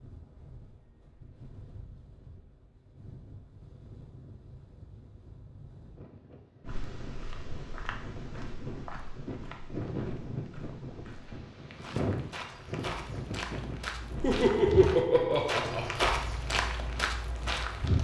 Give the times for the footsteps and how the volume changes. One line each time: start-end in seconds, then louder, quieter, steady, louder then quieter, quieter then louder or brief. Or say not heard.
6.7-17.9 quieter then louder.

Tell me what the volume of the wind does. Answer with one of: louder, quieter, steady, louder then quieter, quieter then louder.
louder then quieter.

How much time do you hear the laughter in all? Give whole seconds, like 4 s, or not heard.
2 s.